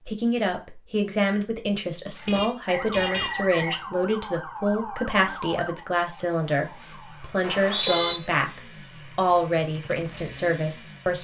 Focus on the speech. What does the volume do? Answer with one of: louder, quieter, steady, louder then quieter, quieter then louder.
steady.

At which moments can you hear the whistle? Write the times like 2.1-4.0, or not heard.
2.9-3.8, 7.4-8.2.